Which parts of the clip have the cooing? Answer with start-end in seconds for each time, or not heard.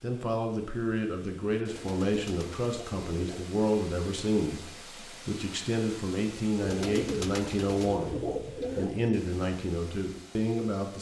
1.6-3.5, 6.6-8.9.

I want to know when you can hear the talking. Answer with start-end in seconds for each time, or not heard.
0.0-10.9.